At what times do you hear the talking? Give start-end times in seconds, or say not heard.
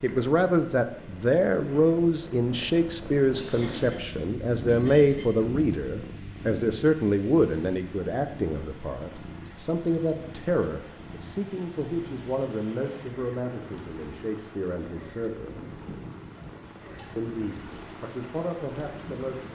0.0-15.6, 17.1-19.4.